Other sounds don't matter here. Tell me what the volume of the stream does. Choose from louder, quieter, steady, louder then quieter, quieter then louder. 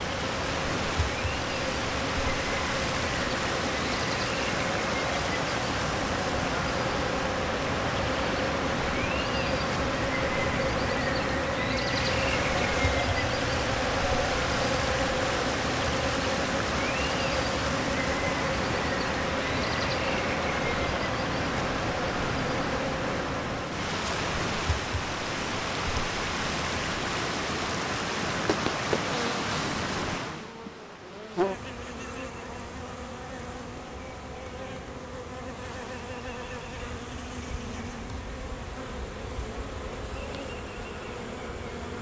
quieter.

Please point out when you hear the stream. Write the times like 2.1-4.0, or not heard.
0.0-41.9.